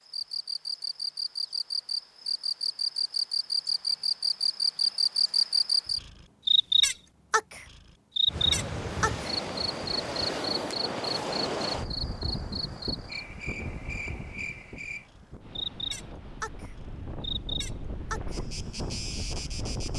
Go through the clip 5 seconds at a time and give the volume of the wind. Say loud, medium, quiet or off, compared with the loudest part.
off, loud, loud, medium.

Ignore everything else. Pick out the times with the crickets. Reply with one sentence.
The crickets can be heard from 0.1 to 19.9 s.